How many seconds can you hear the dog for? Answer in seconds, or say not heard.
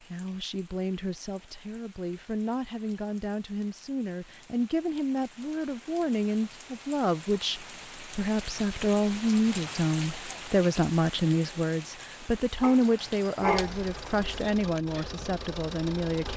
2 s.